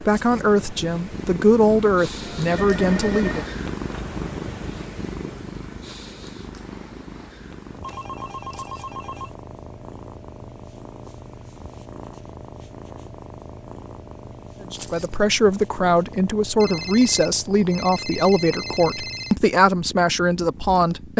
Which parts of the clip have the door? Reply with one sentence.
You can't hear the door here.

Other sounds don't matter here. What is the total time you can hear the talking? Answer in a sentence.
You can hear the talking for 10 seconds altogether.